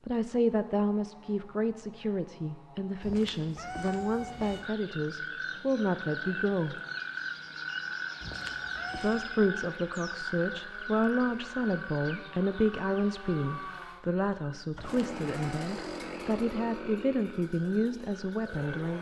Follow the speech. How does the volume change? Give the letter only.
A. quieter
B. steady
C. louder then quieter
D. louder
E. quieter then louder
B.